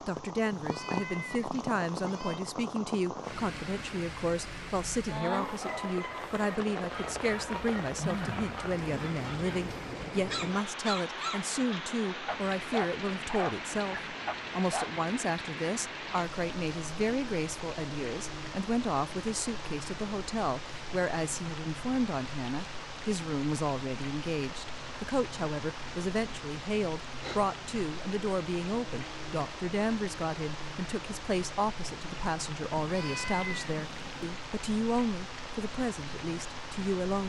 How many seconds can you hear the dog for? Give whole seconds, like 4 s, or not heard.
10 s.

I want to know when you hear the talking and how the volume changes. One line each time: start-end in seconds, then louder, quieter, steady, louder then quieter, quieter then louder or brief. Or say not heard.
0.0-37.2 steady.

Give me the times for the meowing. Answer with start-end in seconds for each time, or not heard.
0.5-2.4, 32.8-34.4.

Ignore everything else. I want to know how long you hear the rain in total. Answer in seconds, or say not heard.
37 s.